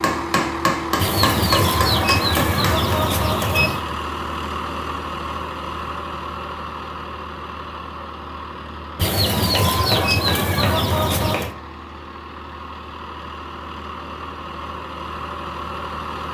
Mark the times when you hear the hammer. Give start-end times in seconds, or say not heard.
0.0-3.0, 9.7-11.5.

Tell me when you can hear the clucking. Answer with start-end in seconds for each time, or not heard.
0.9-3.9, 8.9-11.6.